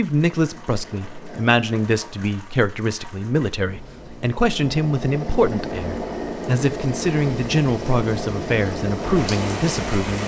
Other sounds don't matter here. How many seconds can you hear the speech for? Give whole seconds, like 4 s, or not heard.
10 s.